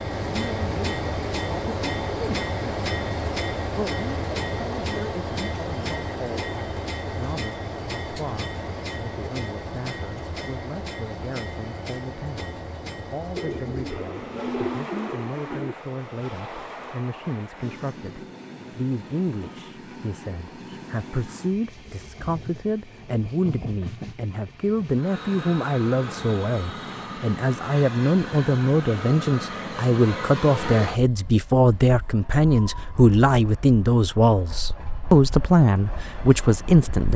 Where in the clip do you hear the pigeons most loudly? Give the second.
15 s.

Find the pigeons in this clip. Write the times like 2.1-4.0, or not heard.
13.3-15.8.